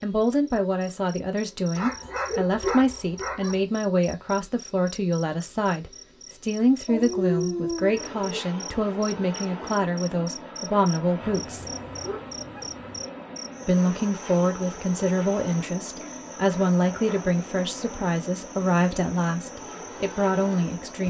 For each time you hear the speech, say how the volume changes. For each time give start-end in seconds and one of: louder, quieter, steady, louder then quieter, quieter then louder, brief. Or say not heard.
0.0-11.7 steady
13.6-21.0 steady.